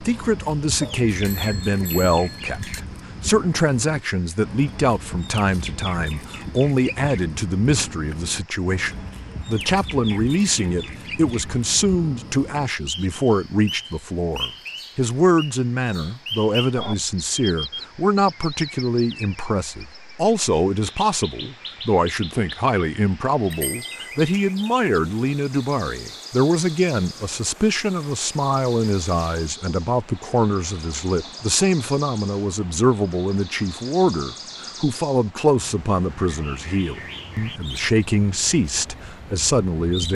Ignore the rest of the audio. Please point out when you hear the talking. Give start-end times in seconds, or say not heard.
0.0-40.0.